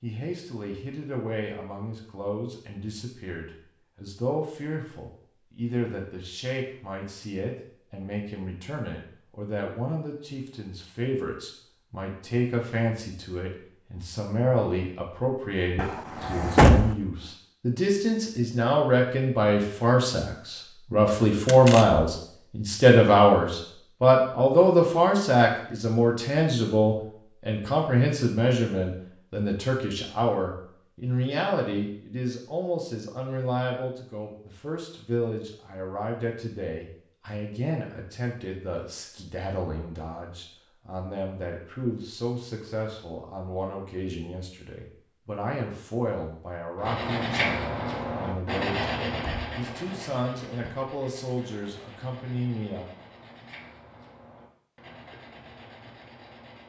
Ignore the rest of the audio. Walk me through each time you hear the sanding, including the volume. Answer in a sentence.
The sanding can be heard from 46.8 to 56.6 s, getting quieter.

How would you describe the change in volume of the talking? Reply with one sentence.
The loudness of the talking goes up, then down.